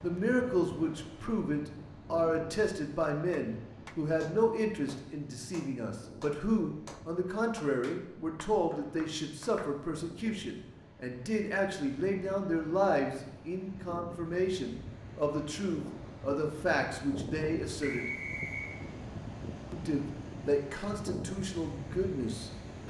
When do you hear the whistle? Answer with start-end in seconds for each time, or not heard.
8.7-9.6, 17.8-18.8.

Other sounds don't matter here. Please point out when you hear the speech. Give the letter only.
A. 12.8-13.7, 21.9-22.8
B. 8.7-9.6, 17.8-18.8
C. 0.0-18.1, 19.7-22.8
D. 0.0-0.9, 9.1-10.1
C.